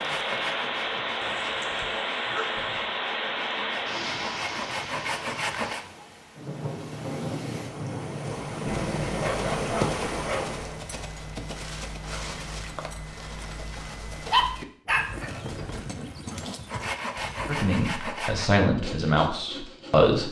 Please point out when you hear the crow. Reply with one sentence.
The crow can't be heard in this clip.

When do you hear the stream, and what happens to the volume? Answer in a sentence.
You can hear the stream from 0.0 to 10.8 s, getting quieter then louder.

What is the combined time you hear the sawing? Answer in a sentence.
The sawing can be heard for 9 seconds in total.